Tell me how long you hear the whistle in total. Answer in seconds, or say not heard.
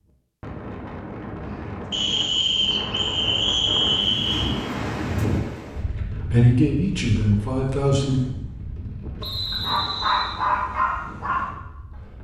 4 s.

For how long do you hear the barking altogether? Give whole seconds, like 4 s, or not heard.
3 s.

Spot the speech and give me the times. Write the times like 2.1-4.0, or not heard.
6.3-8.2.